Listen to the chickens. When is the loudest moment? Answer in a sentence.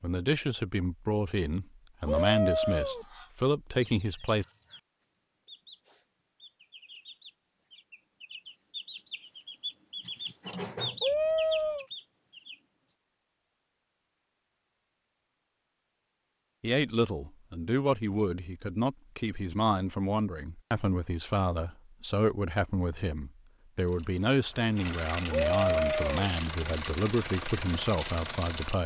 The loudest moment of the chickens is at 11 seconds.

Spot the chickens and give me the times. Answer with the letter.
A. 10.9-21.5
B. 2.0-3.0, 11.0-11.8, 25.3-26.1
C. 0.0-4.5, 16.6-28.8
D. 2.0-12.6
D.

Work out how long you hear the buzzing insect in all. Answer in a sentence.
You can't hear the buzzing insect here.